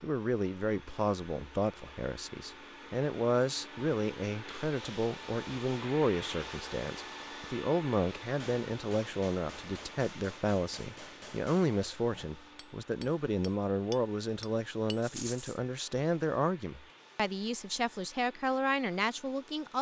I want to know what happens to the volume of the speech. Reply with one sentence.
The volume of the speech stays about the same.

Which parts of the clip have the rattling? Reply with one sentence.
The rattling can be heard from 15.0 to 15.6 s.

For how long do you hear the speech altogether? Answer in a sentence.
You can hear the speech for 20 seconds altogether.